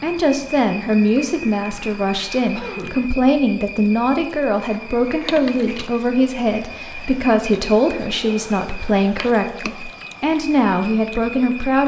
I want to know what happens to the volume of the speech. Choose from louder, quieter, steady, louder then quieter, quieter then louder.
steady.